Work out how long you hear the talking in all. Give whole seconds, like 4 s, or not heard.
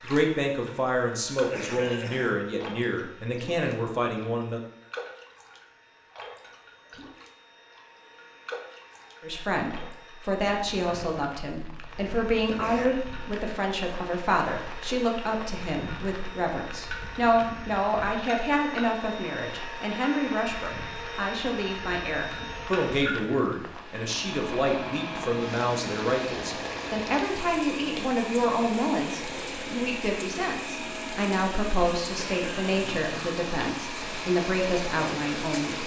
31 s.